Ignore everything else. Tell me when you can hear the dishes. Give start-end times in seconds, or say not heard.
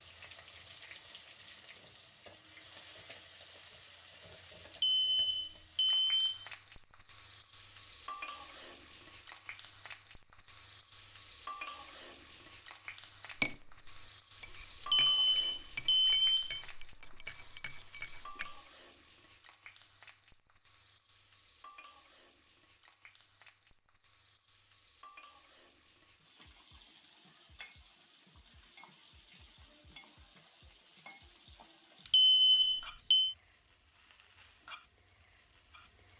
13.3-18.6.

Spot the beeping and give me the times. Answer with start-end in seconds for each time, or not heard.
4.7-6.3, 14.8-16.4, 32.0-33.4.